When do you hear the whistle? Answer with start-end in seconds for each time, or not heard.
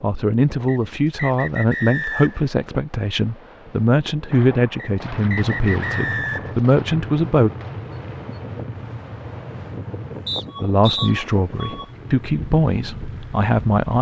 0.7-2.5, 4.8-6.6, 10.2-11.1.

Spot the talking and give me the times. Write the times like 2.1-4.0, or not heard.
0.0-7.5, 10.6-13.9.